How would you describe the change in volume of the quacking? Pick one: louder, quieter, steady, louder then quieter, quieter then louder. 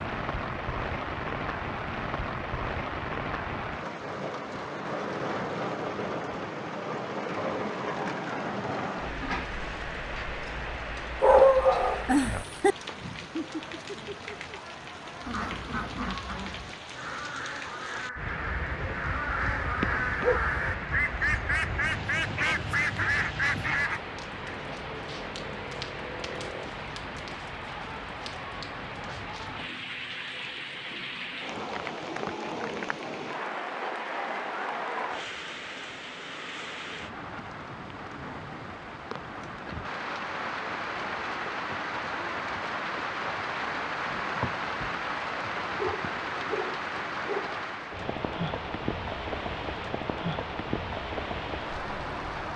louder.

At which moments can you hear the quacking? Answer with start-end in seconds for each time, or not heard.
15.2-24.0.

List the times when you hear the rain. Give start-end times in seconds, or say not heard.
0.0-52.5.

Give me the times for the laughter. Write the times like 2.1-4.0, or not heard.
12.9-14.3.